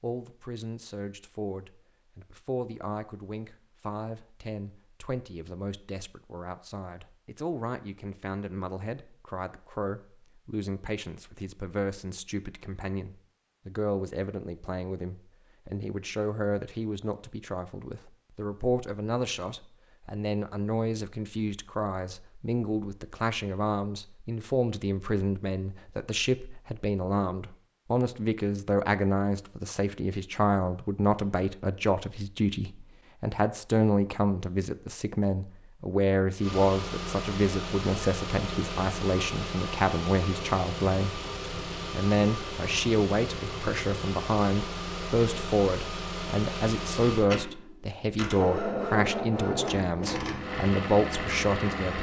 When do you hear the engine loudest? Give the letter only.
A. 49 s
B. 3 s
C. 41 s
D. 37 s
A.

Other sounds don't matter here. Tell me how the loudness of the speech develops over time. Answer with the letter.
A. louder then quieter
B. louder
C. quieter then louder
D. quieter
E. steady
B.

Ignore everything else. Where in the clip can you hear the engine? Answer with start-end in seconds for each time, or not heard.
36.4-51.9.